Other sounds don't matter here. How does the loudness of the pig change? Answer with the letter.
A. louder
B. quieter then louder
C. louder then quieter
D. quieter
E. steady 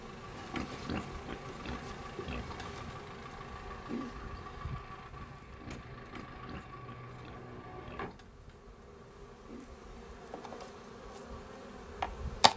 D.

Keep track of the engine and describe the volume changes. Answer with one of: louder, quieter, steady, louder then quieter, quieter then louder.
steady.